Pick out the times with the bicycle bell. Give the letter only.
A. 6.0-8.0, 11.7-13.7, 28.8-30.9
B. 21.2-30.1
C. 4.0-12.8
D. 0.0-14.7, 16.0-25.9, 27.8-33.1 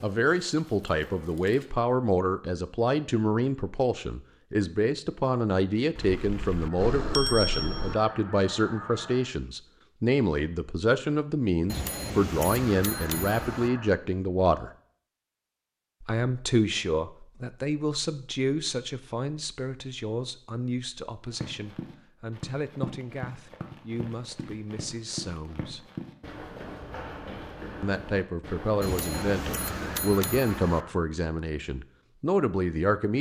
A.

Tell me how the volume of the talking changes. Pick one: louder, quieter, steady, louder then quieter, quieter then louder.
quieter then louder.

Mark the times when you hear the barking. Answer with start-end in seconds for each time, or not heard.
not heard.